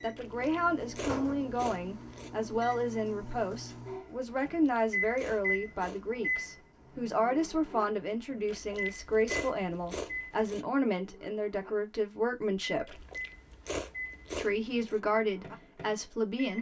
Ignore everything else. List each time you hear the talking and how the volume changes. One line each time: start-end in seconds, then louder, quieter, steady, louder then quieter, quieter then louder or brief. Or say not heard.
0.0-13.1 steady
14.3-16.5 brief.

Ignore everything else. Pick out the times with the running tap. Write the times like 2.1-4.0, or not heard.
not heard.